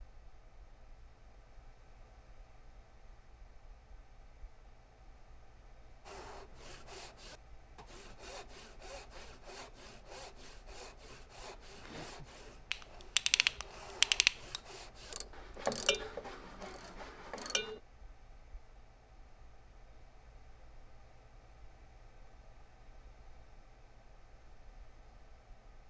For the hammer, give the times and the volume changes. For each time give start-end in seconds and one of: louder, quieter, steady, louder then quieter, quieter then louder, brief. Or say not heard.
not heard.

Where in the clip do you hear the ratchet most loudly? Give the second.
14 s.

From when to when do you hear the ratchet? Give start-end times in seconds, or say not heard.
12.7-17.8.